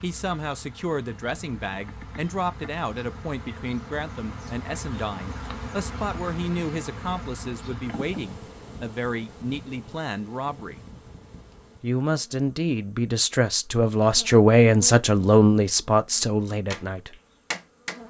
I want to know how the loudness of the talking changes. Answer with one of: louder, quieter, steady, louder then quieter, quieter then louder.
louder.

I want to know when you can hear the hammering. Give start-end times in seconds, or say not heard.
16.7-18.0.